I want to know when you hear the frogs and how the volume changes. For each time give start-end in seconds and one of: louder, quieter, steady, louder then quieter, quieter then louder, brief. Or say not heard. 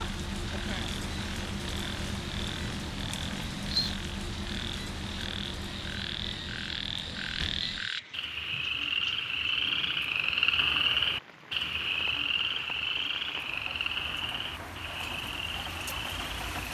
0.0-16.6 louder then quieter.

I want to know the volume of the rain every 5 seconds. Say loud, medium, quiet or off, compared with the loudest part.
loud, medium, medium, loud.